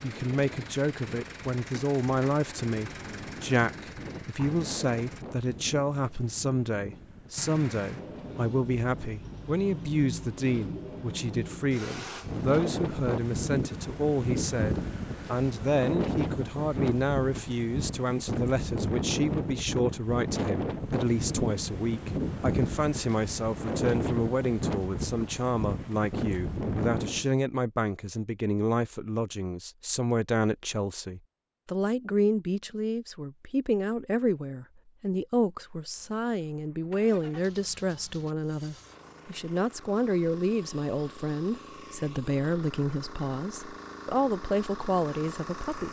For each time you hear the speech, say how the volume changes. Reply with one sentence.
You can hear the speech from 0.0 to 45.8 s, at a steady volume.